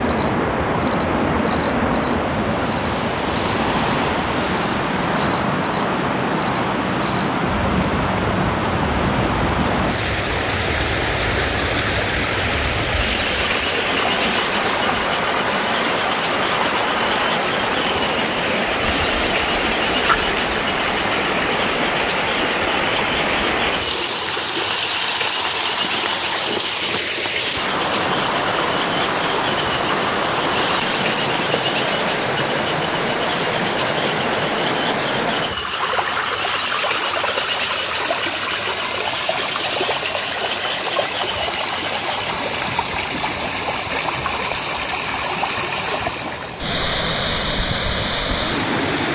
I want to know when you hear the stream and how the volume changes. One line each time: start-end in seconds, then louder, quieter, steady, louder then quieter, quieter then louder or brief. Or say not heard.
0.0-49.1 steady.